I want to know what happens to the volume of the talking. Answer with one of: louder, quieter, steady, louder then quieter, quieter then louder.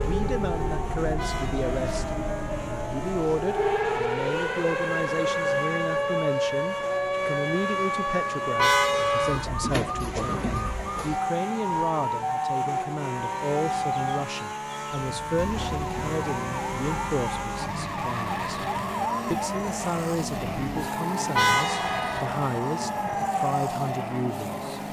steady.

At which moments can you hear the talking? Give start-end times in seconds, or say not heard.
0.0-18.6, 19.3-24.8.